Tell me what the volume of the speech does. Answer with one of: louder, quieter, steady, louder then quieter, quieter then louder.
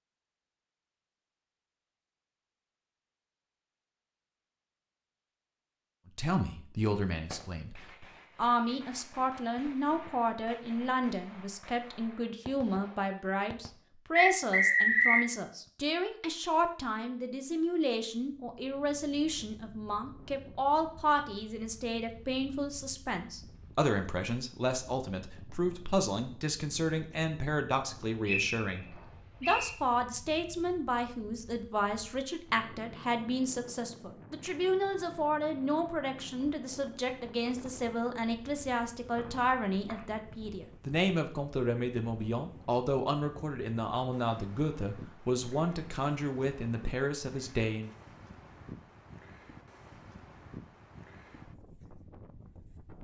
steady.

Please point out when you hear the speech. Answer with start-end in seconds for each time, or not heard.
6.2-47.9.